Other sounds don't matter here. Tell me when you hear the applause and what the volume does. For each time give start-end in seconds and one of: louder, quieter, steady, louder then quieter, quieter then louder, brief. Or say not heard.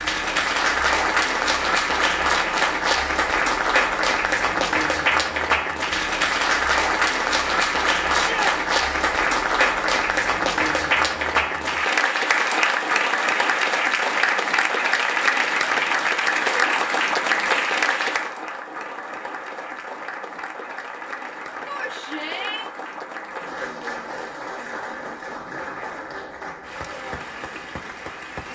0.0-28.5 quieter.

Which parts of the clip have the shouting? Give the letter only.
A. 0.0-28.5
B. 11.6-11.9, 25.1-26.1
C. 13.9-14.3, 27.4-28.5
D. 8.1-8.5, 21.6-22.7
D.